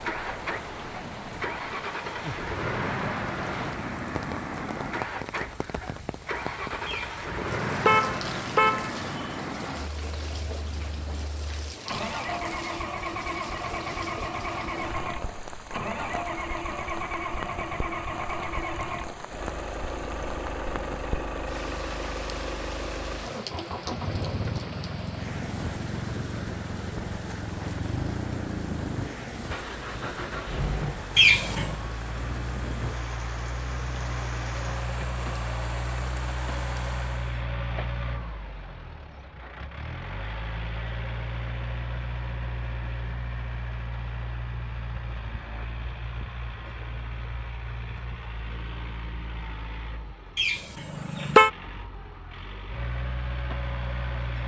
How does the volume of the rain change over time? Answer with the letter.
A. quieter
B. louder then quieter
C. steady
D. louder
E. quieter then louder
C.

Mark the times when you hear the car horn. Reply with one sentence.
The car horn can be heard from 6.8 to 9.3 s, from 31.1 to 31.8 s and from 50.4 to 51.5 s.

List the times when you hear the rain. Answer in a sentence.
You can hear the rain from 0.0 to 37.5 s.